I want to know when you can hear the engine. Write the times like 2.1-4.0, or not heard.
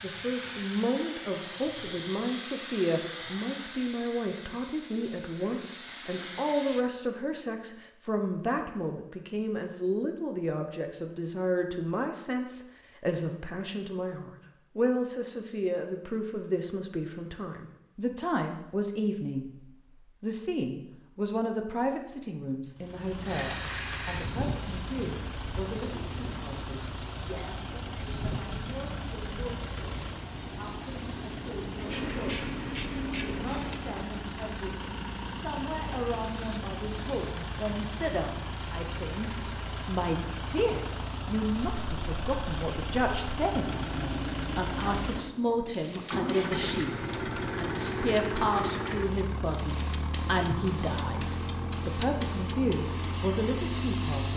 22.8-54.3.